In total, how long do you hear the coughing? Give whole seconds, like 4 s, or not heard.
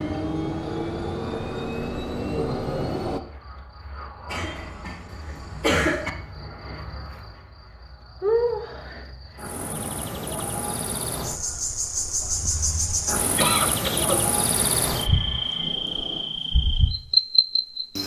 3 s.